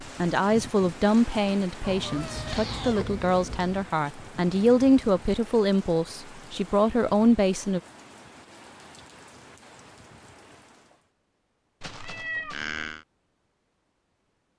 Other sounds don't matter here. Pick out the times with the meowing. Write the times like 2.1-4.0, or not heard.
1.8-3.9, 11.8-13.1.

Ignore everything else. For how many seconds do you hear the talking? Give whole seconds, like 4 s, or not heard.
8 s.